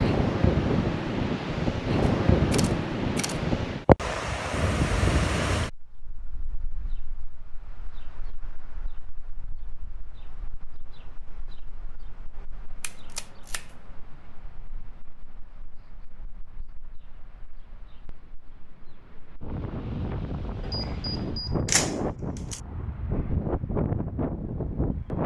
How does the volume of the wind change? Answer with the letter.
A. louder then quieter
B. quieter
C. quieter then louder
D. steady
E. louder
C.